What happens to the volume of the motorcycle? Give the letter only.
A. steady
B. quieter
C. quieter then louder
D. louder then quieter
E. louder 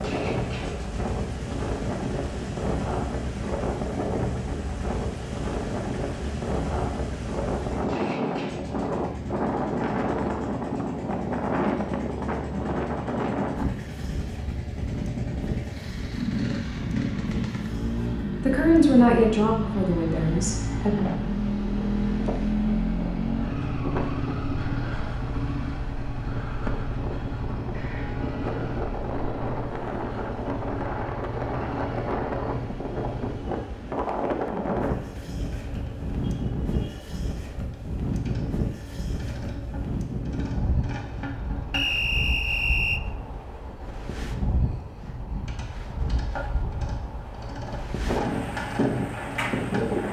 D.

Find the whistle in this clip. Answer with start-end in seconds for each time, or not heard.
41.7-43.0.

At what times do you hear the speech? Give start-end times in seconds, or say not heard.
18.4-20.9.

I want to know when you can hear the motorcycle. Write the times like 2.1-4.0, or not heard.
0.0-50.0.